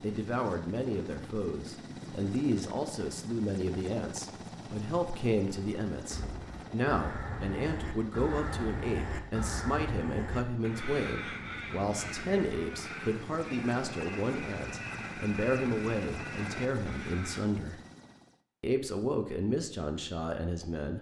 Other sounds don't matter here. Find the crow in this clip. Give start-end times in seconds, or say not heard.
6.1-17.4.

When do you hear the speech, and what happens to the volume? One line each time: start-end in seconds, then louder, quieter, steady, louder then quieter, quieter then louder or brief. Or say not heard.
0.0-17.8 steady
18.6-20.9 brief.